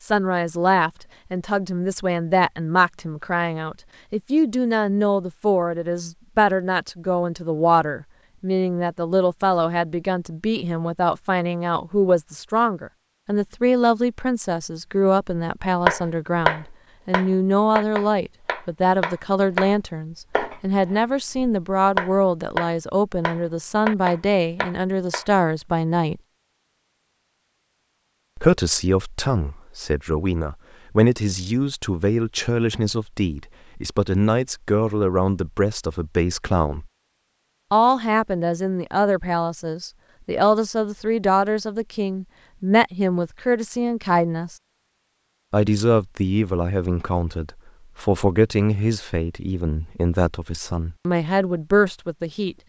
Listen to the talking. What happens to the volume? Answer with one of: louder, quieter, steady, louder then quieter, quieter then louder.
steady.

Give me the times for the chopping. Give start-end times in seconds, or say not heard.
15.8-25.2.